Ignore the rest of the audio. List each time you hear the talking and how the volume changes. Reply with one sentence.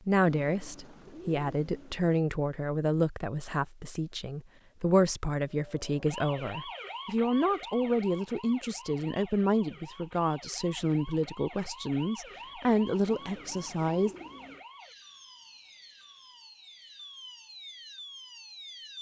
You can hear the talking from 0.1 to 14.1 s, at a steady volume.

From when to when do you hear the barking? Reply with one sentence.
You can't hear the barking here.